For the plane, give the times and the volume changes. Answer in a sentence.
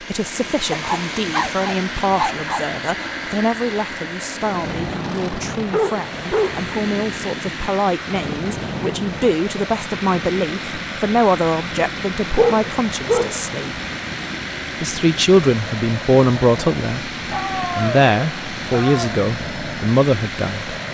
The plane can be heard from 0.0 to 20.8 s, at a steady volume.